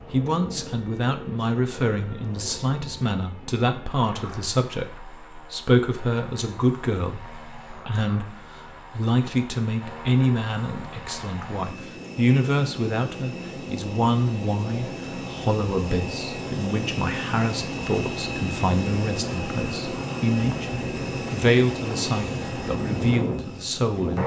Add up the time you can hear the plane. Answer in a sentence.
You can hear the plane for 24 seconds altogether.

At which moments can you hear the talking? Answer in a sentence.
The talking can be heard from 0.0 to 24.2 s.